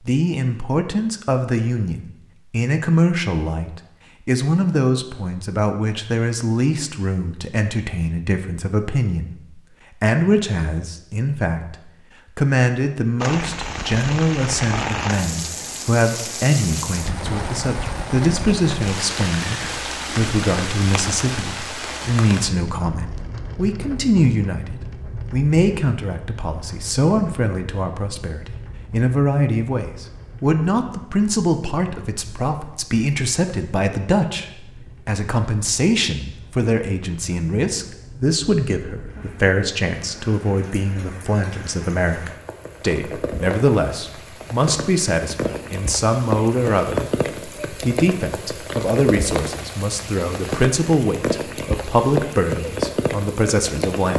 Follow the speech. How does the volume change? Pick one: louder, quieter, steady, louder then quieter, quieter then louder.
steady.